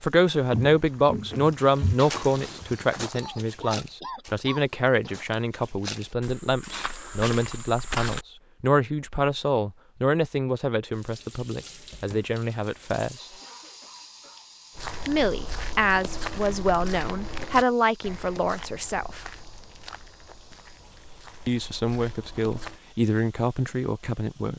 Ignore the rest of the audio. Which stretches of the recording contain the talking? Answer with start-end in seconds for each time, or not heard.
0.0-13.2, 15.1-19.2, 21.4-24.5.